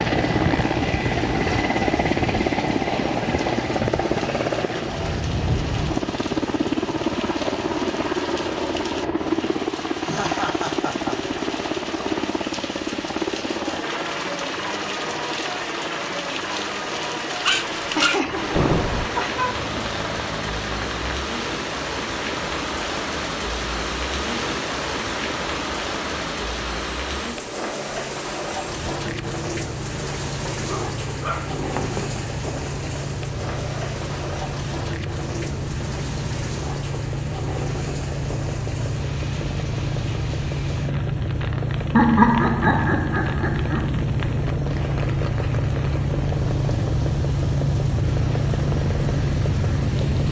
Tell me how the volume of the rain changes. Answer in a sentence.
The loudness of the rain goes up, then down.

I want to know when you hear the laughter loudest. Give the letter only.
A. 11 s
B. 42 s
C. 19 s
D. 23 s
B.